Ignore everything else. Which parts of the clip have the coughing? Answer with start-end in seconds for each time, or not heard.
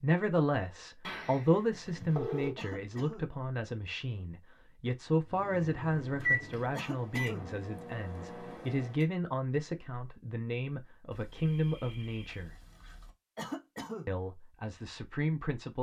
2.5-3.3, 6.7-7.5, 13.3-14.1.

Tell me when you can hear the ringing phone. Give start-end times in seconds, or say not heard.
1.1-2.5, 11.1-13.1.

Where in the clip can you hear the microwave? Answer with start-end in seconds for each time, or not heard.
5.3-9.1.